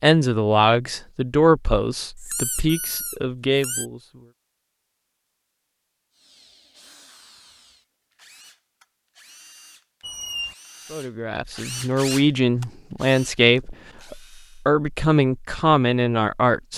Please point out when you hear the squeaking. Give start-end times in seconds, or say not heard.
2.1-3.9, 10.0-10.6.